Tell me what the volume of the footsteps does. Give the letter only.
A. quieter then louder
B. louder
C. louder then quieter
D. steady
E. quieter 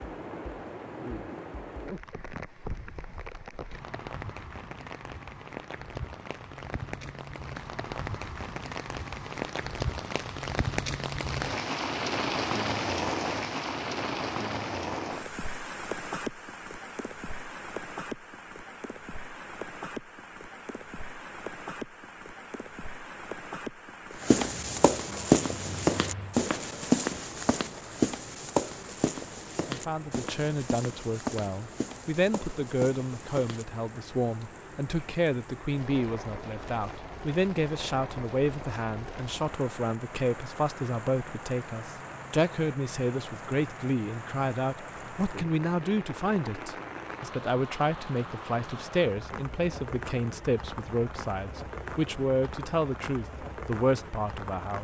E.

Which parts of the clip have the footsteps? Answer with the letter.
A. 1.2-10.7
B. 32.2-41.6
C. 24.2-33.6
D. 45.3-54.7
C.